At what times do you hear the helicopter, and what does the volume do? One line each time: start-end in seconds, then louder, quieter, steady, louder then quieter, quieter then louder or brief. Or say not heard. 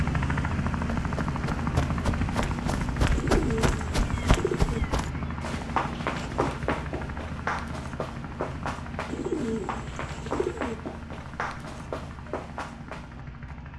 0.0-13.7 quieter.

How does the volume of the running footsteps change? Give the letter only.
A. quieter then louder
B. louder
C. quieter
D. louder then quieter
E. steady
C.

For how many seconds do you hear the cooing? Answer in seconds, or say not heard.
3 s.